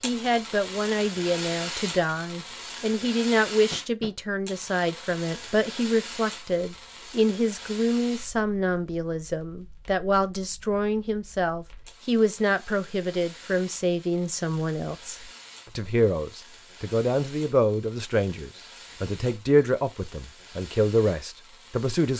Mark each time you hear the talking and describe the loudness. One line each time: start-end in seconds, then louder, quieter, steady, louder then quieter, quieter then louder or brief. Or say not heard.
0.0-22.1 steady.